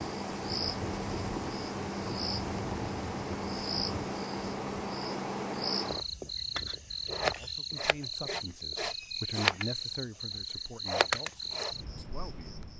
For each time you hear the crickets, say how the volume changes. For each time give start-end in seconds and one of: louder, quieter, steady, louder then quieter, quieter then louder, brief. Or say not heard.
0.0-12.7 steady.